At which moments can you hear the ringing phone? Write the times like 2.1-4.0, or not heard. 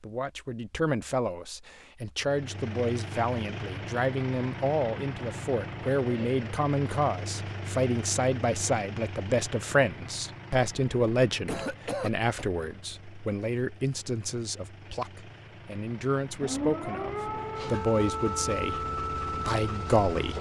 not heard.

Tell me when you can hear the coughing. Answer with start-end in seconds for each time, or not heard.
11.4-12.4.